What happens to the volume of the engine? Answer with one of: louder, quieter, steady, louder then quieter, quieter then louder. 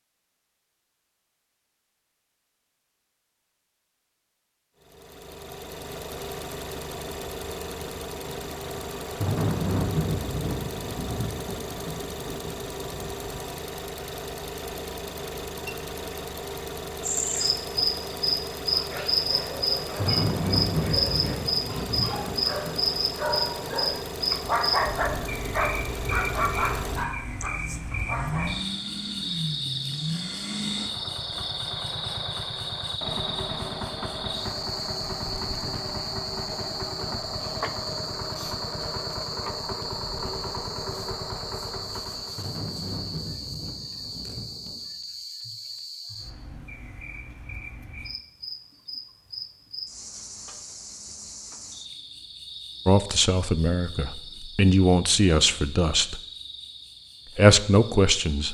steady.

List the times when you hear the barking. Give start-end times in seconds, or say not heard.
18.7-28.4.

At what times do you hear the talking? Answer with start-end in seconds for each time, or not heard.
52.9-56.2, 57.4-58.4.